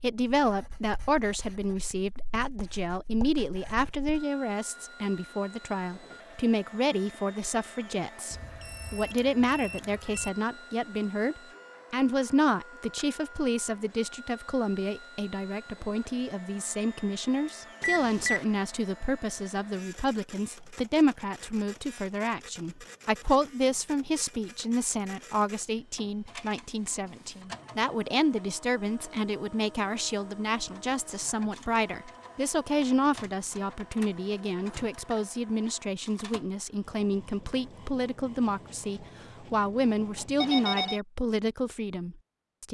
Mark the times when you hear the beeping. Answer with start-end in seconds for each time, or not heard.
8.3-10.3, 17.8-18.4, 40.4-41.0.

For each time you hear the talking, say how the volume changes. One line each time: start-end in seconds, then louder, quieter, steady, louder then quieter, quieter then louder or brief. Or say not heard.
0.0-42.6 steady.